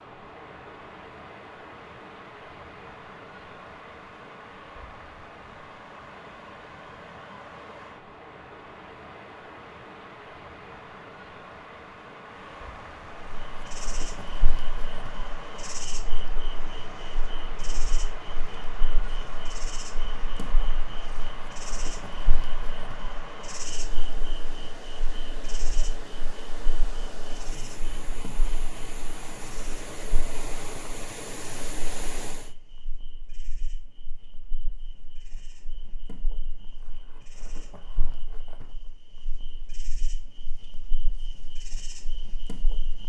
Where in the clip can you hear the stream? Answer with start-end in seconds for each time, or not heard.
0.0-32.5.